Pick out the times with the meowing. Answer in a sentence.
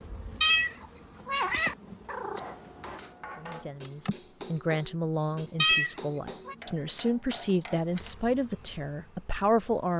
You can hear the meowing from 0.4 to 2.4 s and from 5.6 to 6.5 s.